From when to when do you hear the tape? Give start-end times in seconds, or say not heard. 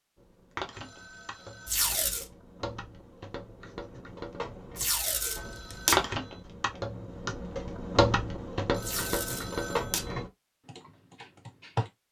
1.6-2.2, 4.8-6.0, 8.8-10.1.